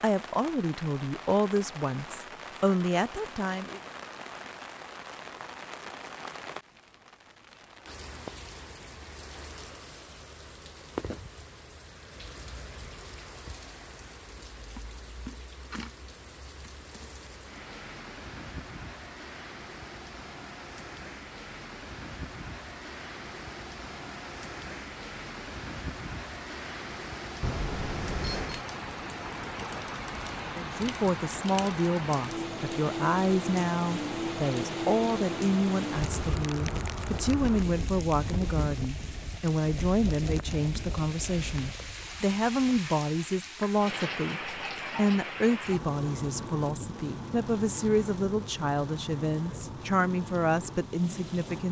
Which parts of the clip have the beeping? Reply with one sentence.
You can hear the beeping from 27.4 to 28.6 s.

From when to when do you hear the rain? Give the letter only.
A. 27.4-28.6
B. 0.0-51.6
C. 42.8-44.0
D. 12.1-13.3
B.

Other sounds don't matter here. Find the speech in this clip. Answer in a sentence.
You can hear the speech from 0.0 to 3.8 s and from 30.4 to 51.6 s.